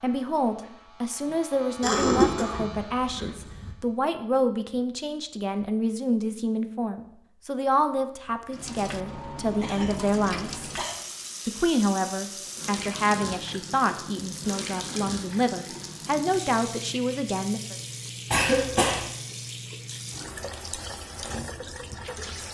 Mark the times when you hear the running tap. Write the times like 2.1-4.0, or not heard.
8.5-22.4.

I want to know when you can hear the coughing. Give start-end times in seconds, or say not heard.
1.8-3.7, 9.6-10.9, 18.3-19.1.